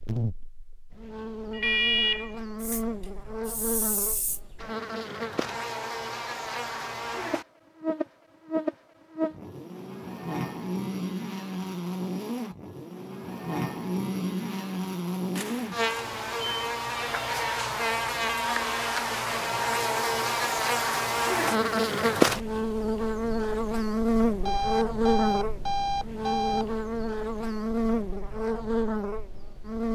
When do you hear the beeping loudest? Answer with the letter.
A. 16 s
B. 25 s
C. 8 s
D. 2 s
D.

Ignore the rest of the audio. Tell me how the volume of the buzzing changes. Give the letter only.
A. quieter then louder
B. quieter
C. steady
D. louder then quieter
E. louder
E.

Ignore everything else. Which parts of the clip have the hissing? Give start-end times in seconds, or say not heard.
2.6-4.4.